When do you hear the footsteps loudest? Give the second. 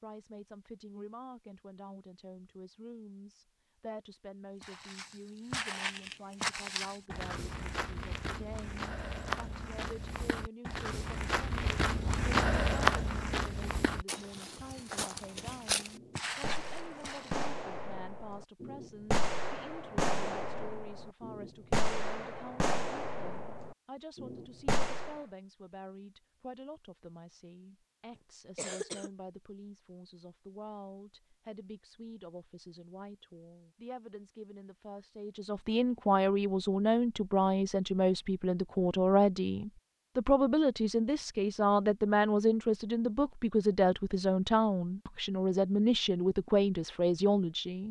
13 s.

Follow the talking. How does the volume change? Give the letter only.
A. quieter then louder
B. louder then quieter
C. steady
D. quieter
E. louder
E.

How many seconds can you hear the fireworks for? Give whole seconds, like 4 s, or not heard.
10 s.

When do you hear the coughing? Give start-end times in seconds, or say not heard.
28.1-29.1.